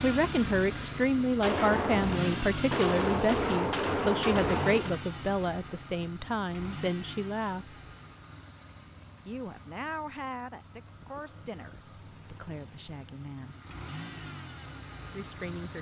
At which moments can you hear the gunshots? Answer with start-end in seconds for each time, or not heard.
1.4-5.0.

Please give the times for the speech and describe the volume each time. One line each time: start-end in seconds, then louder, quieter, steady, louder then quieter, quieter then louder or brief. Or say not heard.
0.0-7.8 quieter
9.2-13.6 quieter then louder
15.1-15.7 brief.